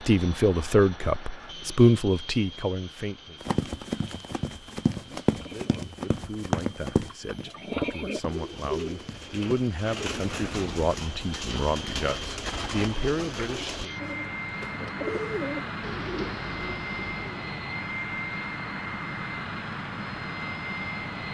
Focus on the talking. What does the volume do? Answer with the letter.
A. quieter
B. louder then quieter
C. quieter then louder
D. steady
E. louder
C.